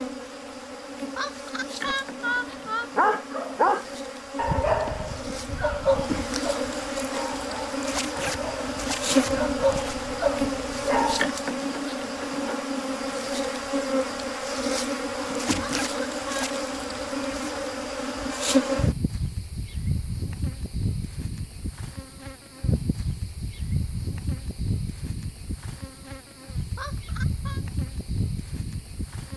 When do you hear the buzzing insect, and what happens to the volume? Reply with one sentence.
You can hear the buzzing insect from 0.0 to 29.3 s, getting louder then quieter.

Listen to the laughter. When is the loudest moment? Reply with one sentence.
The volume of the laughter peaks at 2 seconds.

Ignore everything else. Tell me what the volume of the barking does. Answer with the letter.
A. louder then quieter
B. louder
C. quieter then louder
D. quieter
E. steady
C.